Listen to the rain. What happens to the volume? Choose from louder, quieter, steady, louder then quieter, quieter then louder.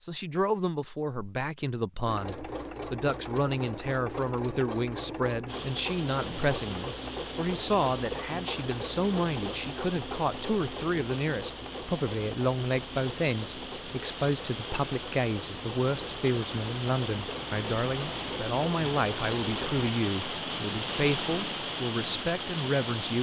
louder.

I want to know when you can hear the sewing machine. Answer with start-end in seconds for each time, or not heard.
2.0-19.9.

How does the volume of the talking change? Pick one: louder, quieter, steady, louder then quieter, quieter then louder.
steady.